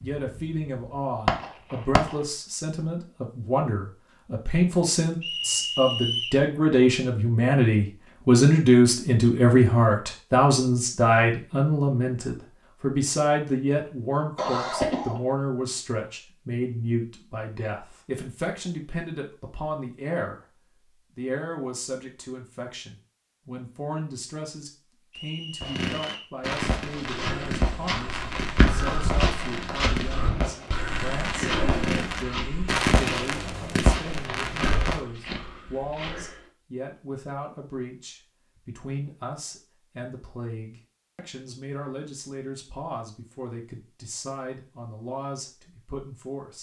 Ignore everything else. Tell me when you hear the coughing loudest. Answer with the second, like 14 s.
15 s.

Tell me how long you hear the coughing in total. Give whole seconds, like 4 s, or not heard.
2 s.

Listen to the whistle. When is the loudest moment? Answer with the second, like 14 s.
6 s.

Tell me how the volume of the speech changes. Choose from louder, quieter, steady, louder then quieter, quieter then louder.
quieter.